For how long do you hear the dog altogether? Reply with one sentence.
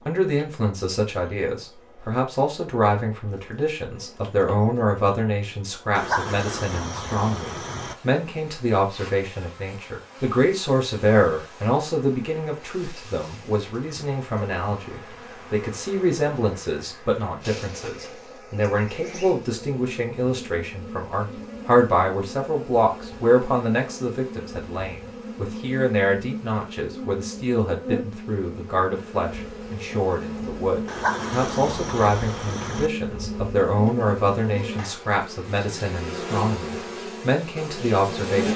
The dog can be heard for 4 seconds in total.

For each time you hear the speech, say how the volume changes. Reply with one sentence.
You can hear the speech from 0.1 to 38.5 s, at a steady volume.